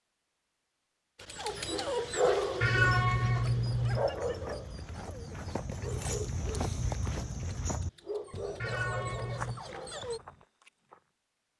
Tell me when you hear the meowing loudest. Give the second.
3 s.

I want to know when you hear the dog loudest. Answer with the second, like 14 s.
2 s.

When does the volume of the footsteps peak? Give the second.
7 s.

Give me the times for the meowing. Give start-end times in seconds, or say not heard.
2.6-4.1, 8.6-9.6.